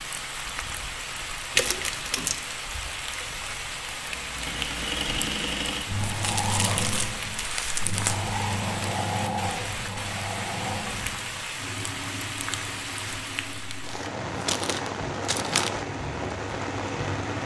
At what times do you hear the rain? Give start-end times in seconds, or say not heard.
0.0-17.4.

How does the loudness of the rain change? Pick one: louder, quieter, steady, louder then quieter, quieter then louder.
steady.